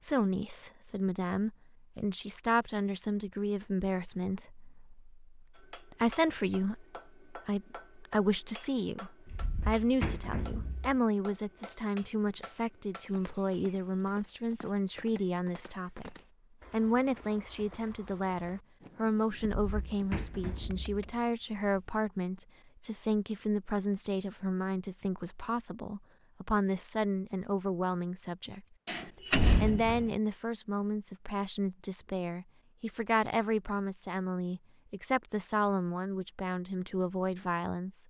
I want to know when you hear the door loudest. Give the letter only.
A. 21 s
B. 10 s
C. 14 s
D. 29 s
D.